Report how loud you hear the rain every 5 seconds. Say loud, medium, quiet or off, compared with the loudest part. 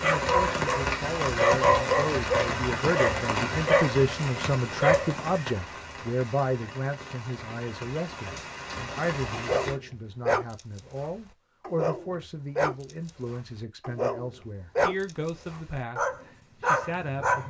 loud, medium, off, off.